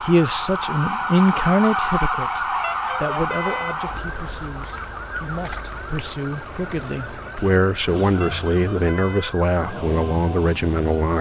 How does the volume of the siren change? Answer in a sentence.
The loudness of the siren goes down.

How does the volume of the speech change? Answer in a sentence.
The loudness of the speech goes down, then up.